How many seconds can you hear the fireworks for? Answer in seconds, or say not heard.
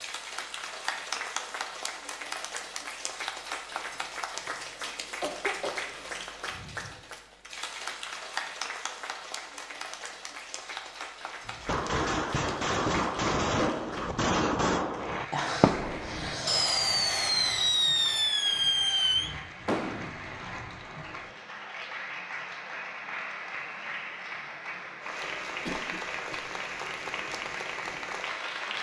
9 s.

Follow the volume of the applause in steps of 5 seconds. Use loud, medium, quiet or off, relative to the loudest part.
loud, loud, medium, medium, loud, loud.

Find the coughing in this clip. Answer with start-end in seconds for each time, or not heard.
5.2-5.8, 15.3-16.7, 25.6-26.4.